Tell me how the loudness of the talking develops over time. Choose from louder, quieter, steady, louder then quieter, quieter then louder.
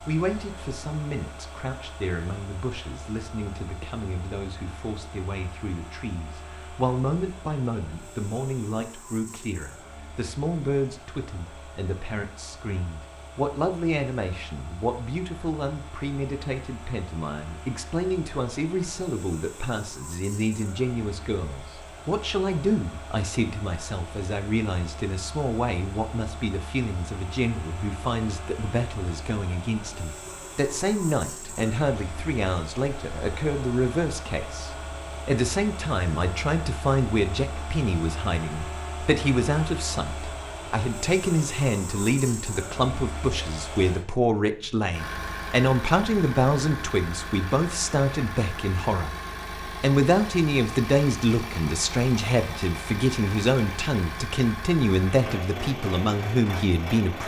louder.